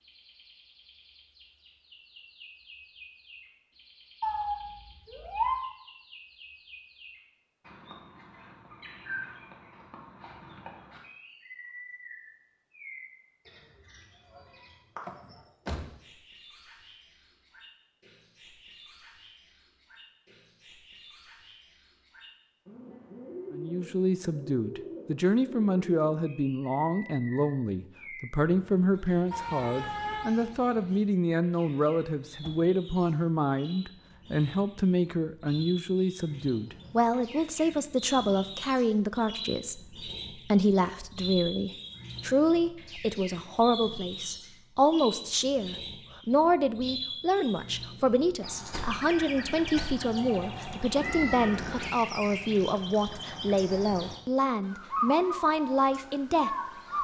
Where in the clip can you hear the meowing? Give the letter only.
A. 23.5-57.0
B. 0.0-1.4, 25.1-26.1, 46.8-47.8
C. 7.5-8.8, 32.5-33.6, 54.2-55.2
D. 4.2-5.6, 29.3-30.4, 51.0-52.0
D.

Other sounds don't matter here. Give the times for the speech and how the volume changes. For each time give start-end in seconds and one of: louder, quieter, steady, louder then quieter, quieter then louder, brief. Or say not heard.
23.5-57.0 steady.